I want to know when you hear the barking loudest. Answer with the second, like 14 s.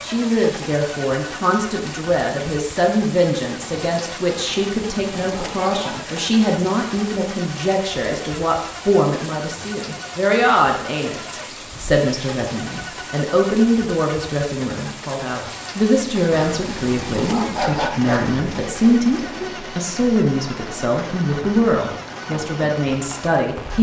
18 s.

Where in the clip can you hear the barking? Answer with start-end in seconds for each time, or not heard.
4.3-6.2, 16.3-18.4.